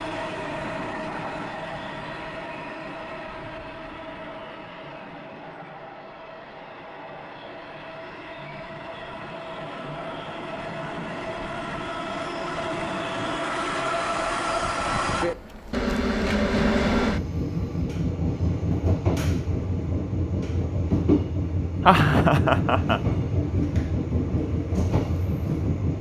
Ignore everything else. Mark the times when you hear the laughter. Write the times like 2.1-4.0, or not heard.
21.8-23.0.